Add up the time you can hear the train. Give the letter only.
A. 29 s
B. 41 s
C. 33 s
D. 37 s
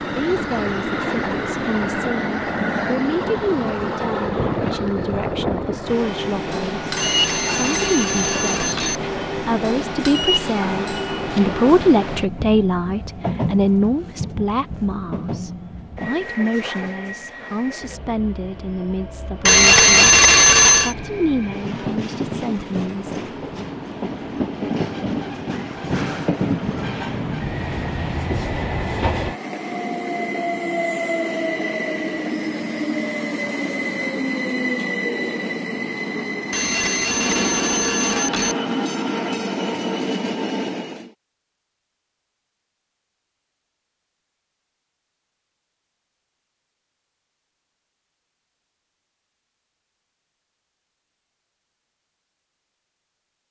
B.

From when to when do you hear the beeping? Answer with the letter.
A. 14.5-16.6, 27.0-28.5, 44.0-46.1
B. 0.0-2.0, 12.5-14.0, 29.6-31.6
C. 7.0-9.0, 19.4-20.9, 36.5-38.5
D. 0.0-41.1
C.